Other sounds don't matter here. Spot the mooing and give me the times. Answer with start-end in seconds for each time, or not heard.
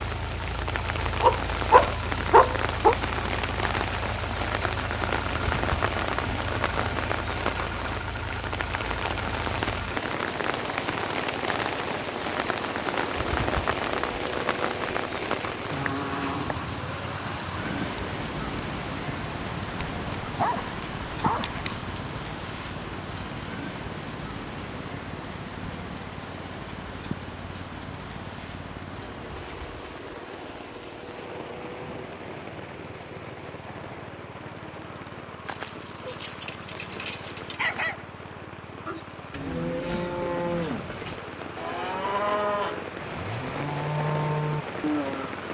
38.9-45.3.